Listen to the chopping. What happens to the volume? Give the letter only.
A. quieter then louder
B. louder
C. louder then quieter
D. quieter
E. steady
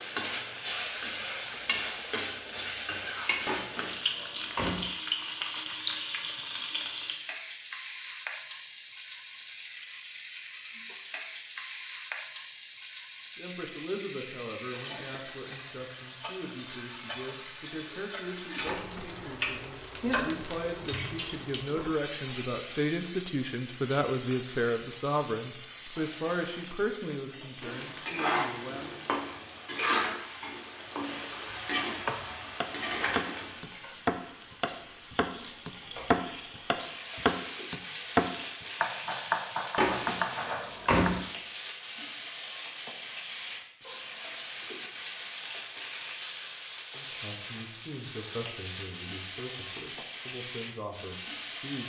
C.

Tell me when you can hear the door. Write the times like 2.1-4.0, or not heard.
3.5-4.9, 18.6-19.1, 39.8-41.2.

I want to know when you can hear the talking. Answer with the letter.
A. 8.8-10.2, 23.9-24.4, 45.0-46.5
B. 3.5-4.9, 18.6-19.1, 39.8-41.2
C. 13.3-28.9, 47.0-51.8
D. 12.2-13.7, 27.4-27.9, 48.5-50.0
C.